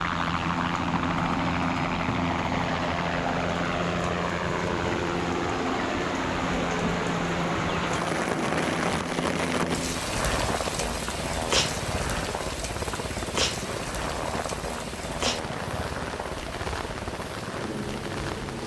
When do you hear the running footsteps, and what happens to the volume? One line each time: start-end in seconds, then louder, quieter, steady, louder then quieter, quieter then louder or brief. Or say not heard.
not heard.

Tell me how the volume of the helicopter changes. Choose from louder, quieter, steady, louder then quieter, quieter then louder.
quieter.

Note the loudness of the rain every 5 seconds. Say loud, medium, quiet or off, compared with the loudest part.
medium, loud, loud, medium.